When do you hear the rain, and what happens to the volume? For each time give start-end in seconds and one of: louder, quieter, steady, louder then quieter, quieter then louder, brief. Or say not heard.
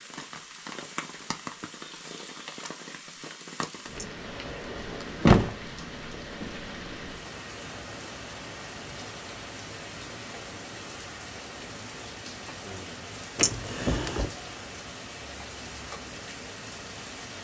0.0-17.3 steady.